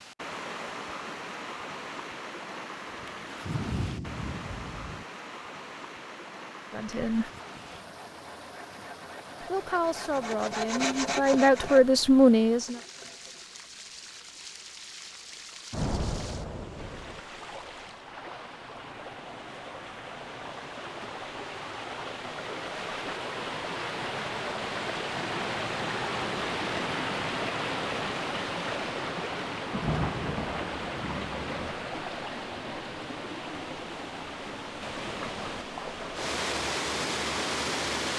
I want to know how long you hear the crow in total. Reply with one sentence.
The crow can't be heard in this clip.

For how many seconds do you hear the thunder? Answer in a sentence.
The thunder can be heard for 5 seconds in total.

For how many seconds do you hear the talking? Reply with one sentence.
The talking can be heard for 4 seconds in total.